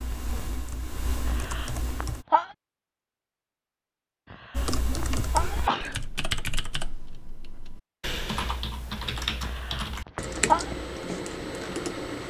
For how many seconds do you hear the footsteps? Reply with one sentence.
The footsteps can't be heard in this clip.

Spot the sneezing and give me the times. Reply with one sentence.
The sneezing can be heard from 1.2 to 2.5 s, from 4.3 to 6.0 s and from 9.4 to 10.7 s.